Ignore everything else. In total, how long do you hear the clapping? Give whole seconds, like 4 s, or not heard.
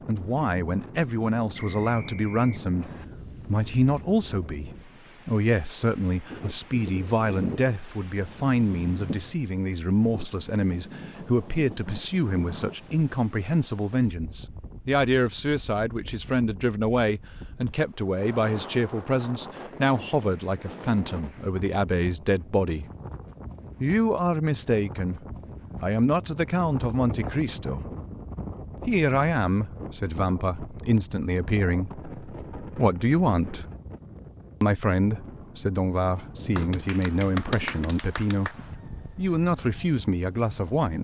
2 s.